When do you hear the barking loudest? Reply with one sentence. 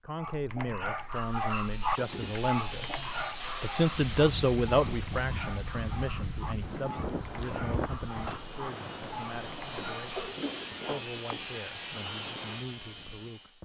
The volume of the barking peaks at 2 seconds.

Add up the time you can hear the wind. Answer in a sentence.
You can hear the wind for 10 seconds altogether.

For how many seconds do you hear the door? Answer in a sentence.
You can hear the door for 2 seconds altogether.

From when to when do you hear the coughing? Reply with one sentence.
You can hear the coughing from 9.8 to 11.5 s.